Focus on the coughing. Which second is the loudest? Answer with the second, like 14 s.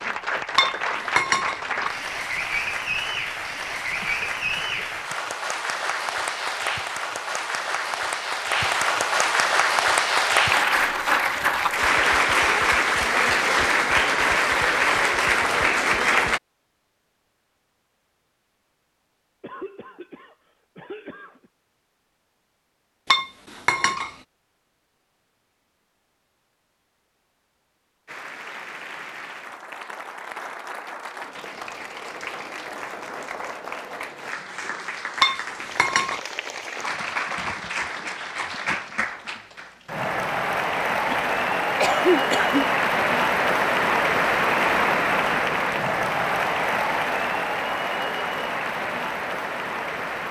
42 s.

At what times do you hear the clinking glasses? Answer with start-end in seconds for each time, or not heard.
0.6-1.9, 23.1-24.1, 35.2-36.2.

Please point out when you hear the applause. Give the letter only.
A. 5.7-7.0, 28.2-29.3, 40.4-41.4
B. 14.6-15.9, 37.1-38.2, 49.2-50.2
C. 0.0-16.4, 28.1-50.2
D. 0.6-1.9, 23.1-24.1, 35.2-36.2
C.